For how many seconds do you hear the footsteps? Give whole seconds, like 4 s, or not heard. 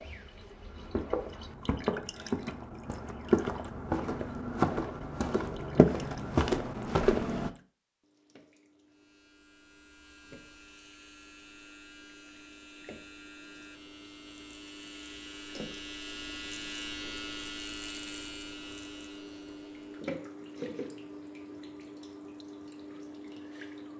7 s.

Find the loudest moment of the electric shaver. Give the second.
17 s.